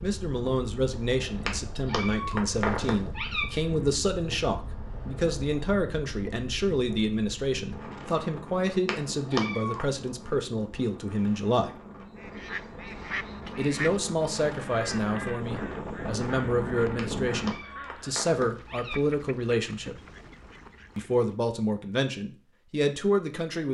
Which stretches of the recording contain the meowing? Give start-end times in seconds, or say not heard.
1.4-3.5, 8.8-9.8, 16.9-19.0.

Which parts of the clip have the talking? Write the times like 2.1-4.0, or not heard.
0.0-11.7, 13.6-19.9, 20.9-23.6.